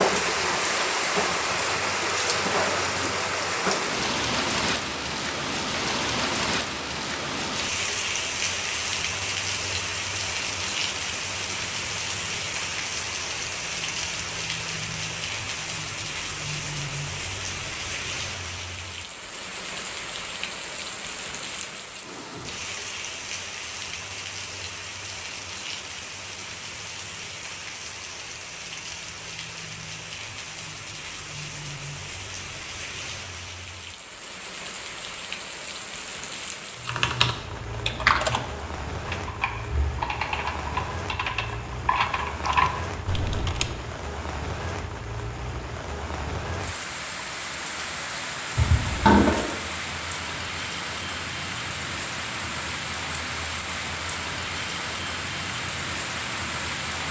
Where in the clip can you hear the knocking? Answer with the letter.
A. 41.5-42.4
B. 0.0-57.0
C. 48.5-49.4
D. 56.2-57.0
C.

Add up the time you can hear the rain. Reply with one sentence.
You can hear the rain for 57 seconds altogether.